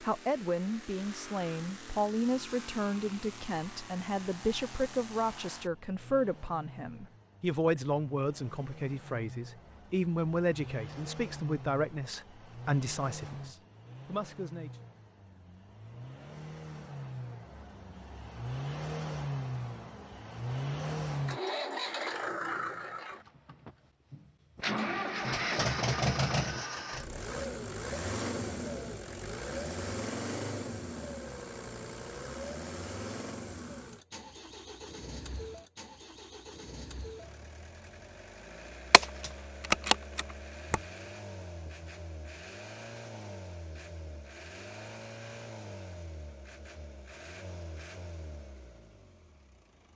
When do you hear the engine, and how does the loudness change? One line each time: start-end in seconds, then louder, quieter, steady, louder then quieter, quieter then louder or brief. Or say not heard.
0.0-49.9 louder then quieter.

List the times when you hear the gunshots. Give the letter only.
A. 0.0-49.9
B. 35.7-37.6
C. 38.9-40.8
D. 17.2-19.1
C.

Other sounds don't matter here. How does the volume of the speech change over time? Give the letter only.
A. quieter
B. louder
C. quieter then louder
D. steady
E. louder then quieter
D.